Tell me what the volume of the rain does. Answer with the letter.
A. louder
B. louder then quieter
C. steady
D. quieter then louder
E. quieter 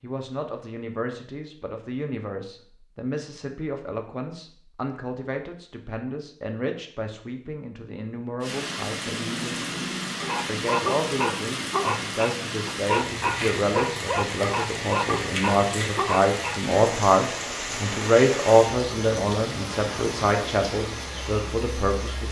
C.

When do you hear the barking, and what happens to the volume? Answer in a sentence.
You can hear the barking from 10.2 to 16.6 s, at a steady volume.